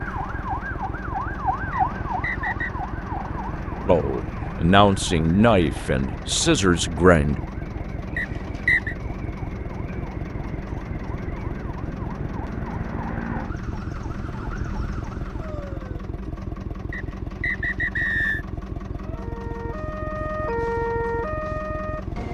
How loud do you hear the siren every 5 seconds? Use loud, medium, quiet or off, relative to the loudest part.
loud, medium, medium, medium, loud.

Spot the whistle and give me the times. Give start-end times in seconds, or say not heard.
1.7-2.8, 8.2-8.9, 16.9-18.4.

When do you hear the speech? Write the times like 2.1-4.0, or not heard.
3.9-7.4.